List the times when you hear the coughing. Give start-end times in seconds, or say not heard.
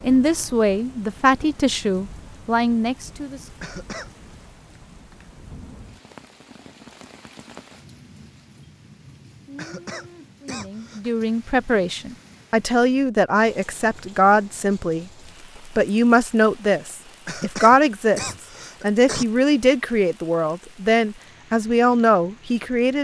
3.6-4.1, 9.6-11.0, 17.2-19.2.